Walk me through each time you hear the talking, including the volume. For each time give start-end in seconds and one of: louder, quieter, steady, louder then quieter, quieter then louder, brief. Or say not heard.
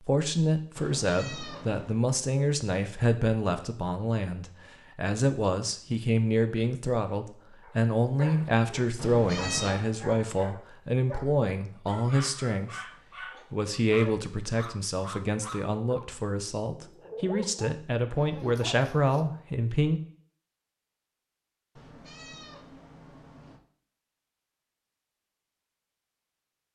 0.0-20.0 steady.